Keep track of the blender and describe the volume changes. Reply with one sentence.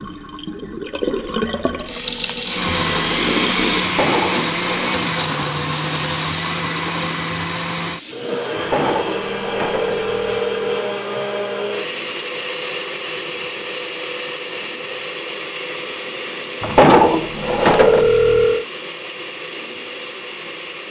The volume of the blender goes down.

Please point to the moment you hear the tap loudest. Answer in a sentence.
The volume of the tap peaks at 4 seconds.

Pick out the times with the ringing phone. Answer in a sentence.
The ringing phone can be heard from 3.8 to 5.0 s, from 8.6 to 10.9 s and from 16.6 to 18.6 s.